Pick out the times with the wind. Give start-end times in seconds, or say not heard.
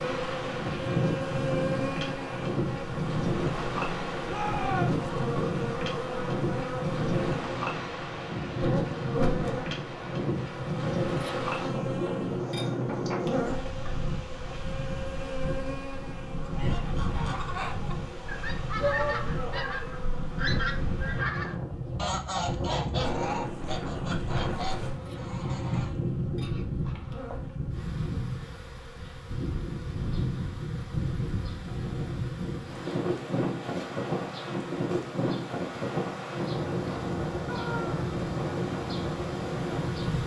0.0-40.2.